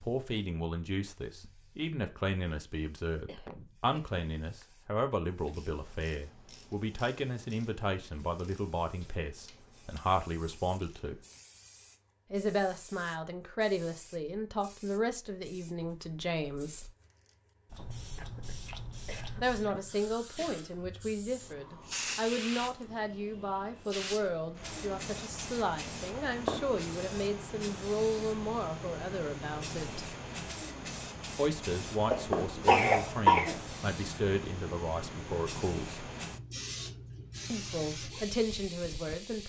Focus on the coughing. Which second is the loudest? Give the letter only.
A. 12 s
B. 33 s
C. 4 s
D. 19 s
B.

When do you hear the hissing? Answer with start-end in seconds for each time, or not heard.
0.0-39.4.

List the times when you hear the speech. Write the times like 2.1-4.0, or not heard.
0.0-11.2, 12.3-16.9, 19.4-30.1, 31.4-36.0, 37.5-39.4.